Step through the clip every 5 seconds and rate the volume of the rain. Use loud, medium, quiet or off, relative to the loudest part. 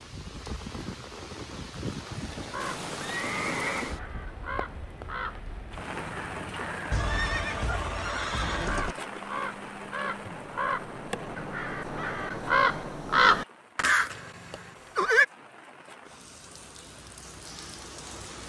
loud, loud, medium, medium.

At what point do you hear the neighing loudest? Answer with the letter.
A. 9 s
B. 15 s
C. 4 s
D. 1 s
B.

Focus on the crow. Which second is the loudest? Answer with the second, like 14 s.
13 s.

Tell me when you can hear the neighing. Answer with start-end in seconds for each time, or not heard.
2.6-4.0, 6.9-8.9, 14.1-15.2.